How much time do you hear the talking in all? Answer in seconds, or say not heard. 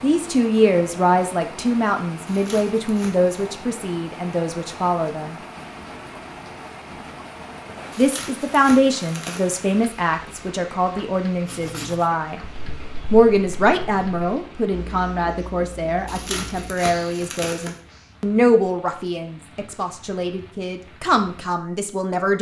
19 s.